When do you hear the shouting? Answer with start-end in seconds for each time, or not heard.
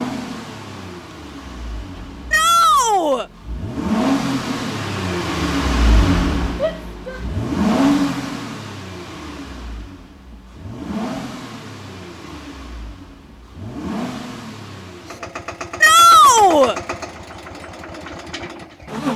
2.3-3.2, 6.5-7.2, 15.8-16.8.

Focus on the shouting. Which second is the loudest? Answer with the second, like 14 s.
16 s.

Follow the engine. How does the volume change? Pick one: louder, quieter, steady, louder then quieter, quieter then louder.
louder then quieter.